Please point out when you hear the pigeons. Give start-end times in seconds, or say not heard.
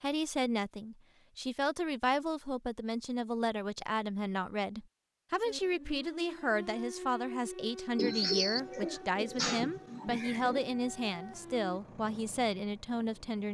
8.0-10.7.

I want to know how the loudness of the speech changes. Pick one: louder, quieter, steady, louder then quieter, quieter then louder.
steady.